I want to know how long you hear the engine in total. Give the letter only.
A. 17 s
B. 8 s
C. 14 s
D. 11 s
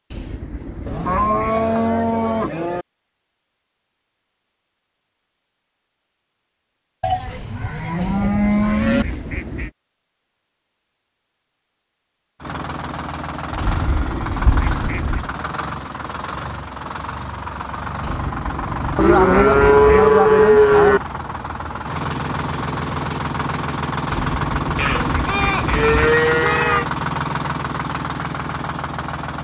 A.